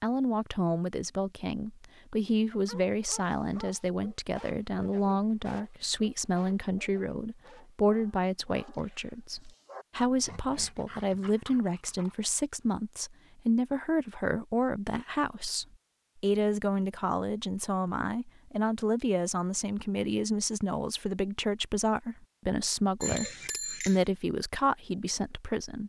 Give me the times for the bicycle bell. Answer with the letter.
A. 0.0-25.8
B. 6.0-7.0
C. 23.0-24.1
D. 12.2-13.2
C.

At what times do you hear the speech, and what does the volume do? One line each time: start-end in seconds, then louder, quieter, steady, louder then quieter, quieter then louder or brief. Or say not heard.
0.0-25.8 steady.